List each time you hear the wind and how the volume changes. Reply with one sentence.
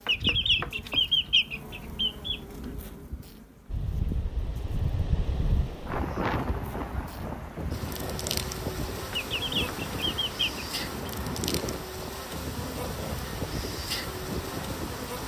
The wind can be heard from 3.6 to 15.2 s, at a steady volume.